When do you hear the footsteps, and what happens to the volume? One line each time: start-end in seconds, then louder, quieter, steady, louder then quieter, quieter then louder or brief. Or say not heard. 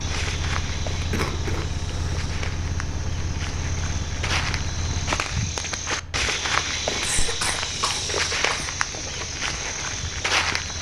0.0-10.7 louder.